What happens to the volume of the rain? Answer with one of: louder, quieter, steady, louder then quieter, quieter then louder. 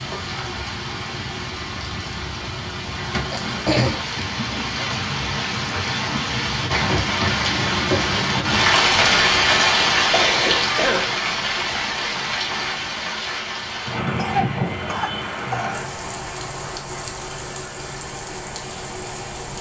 louder then quieter.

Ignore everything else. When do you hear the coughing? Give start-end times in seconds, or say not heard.
2.2-4.0, 10.1-11.1, 14.2-15.8.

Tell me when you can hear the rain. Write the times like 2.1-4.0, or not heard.
0.0-19.5.